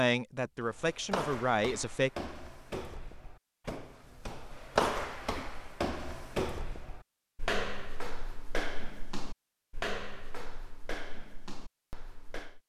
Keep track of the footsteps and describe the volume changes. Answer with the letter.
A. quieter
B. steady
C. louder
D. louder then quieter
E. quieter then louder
D.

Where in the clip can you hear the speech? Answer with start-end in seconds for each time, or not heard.
0.0-2.1.